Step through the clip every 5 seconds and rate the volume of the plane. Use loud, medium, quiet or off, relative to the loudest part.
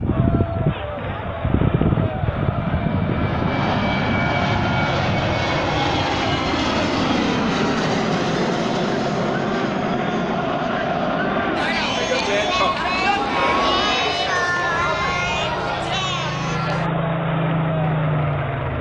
loud, loud, medium, loud.